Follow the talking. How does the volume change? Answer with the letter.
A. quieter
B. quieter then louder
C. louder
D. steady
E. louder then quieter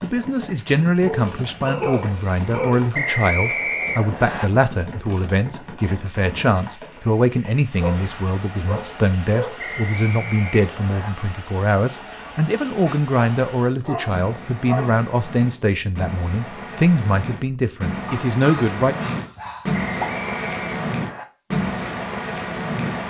D.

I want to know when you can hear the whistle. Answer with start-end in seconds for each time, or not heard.
2.9-4.5, 9.6-11.1, 19.8-21.2.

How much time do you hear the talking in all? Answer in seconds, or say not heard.
19 s.